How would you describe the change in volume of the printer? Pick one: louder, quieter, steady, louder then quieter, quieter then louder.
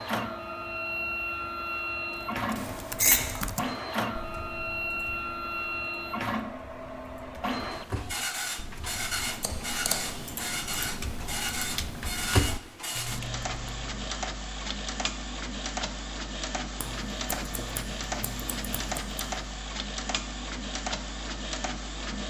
steady.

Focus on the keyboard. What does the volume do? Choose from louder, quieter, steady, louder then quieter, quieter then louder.
quieter then louder.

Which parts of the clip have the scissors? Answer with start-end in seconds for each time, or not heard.
2.5-3.4, 9.4-10.3, 16.8-19.4.